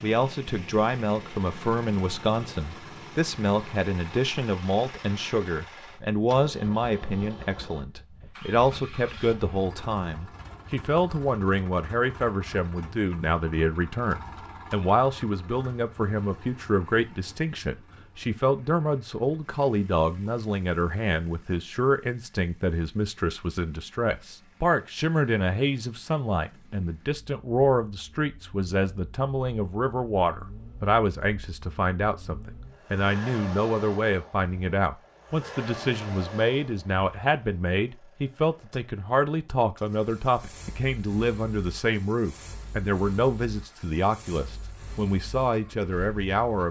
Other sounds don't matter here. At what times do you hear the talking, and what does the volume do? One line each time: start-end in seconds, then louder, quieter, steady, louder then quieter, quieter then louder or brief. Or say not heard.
0.0-46.6 steady.